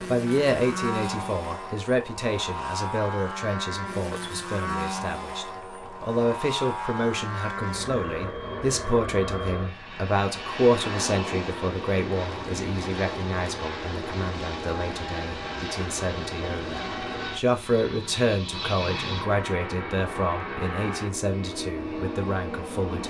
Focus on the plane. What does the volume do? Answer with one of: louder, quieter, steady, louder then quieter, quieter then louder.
steady.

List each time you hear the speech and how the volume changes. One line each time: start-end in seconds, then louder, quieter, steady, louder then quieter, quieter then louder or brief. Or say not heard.
0.1-23.0 steady.